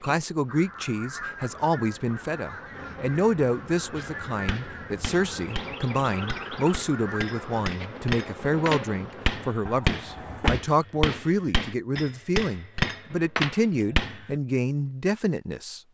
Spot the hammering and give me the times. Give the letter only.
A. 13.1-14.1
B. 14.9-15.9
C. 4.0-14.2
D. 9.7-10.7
C.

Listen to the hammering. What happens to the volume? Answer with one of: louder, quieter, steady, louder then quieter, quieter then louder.
louder.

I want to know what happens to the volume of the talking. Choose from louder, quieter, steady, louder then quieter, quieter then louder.
steady.